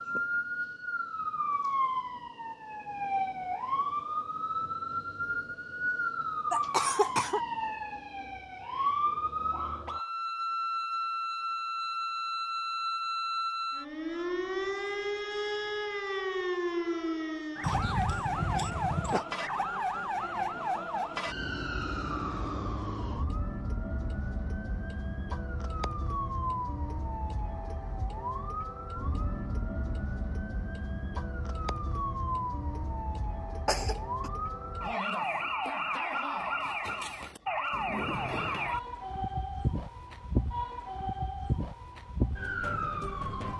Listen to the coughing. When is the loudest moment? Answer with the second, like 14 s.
7 s.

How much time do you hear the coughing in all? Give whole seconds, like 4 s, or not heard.
3 s.